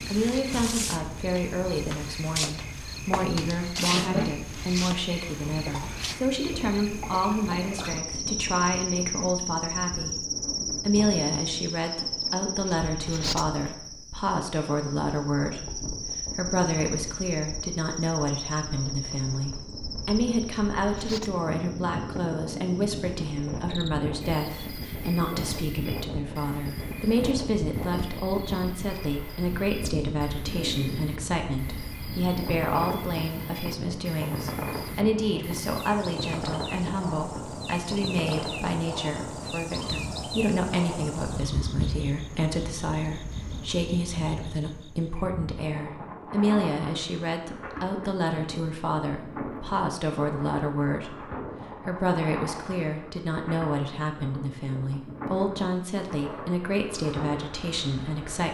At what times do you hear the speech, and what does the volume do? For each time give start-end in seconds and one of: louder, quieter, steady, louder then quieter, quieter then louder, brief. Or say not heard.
0.1-58.4 steady.